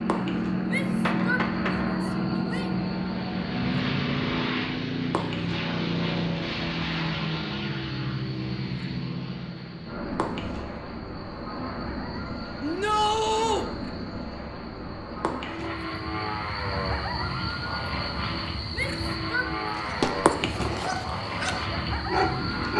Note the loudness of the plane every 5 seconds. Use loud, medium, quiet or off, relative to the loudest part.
loud, loud, medium, medium, medium.